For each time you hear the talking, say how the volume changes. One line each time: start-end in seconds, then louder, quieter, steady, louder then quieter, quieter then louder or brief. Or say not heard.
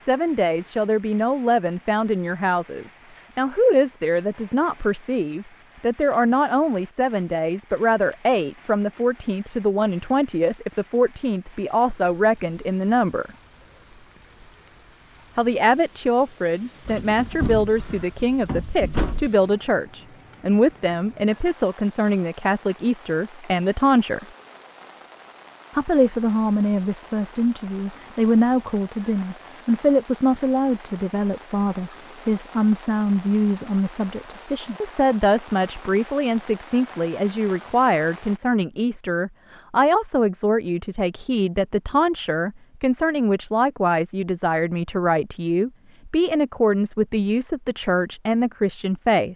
0.1-13.3 steady
15.3-24.2 steady
25.8-49.3 steady.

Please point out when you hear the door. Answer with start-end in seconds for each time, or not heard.
16.9-19.3.